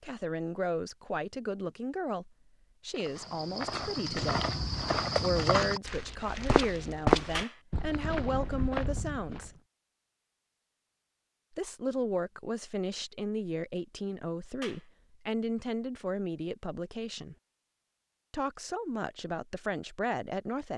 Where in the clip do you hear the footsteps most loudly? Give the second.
7 s.